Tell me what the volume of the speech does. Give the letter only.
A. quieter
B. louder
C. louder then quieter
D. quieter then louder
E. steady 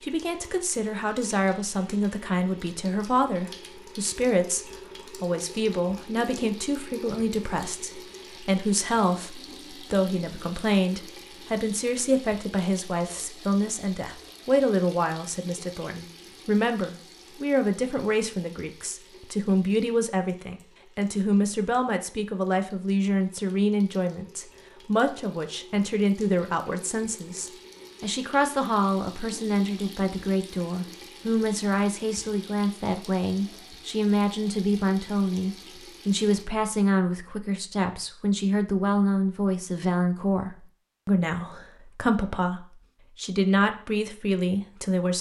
E.